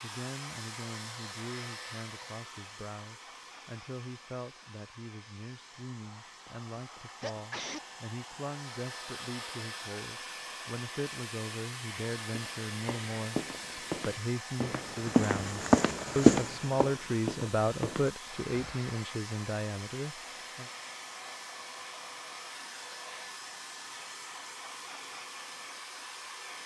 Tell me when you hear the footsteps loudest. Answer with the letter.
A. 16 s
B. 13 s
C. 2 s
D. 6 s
A.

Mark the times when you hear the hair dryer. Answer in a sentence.
You can hear the hair dryer from 0.0 to 26.6 s.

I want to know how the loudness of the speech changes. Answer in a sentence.
The volume of the speech goes up.